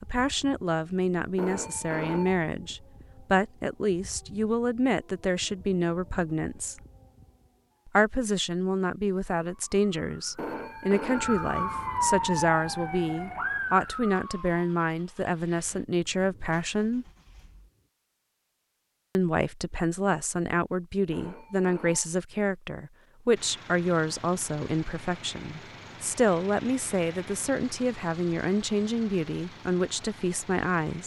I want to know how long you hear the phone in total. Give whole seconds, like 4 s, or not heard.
4 s.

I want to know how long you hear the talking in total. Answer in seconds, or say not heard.
28 s.